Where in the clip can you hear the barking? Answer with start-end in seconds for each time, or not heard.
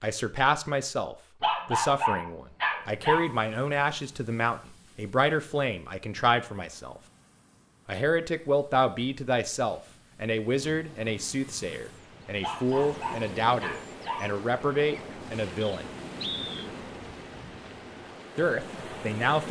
1.4-3.2, 12.4-14.2.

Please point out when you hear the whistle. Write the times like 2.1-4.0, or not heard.
15.6-16.7.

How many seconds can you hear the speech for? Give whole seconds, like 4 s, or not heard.
16 s.